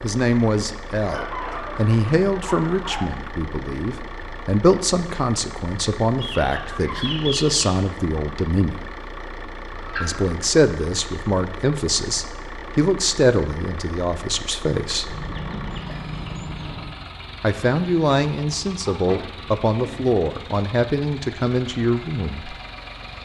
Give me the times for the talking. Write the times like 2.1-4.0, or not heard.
0.0-8.8, 10.0-15.2, 17.4-22.6.